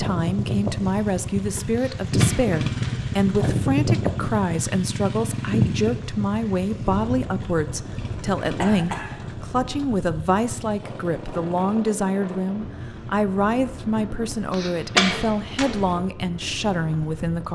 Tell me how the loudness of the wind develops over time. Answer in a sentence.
The loudness of the wind goes down.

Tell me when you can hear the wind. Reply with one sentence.
The wind can be heard from 0.0 to 17.4 s.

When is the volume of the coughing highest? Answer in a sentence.
The loudest moment of the coughing is at 15 seconds.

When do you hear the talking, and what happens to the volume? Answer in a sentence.
The talking can be heard from 0.0 to 17.4 s, at a steady volume.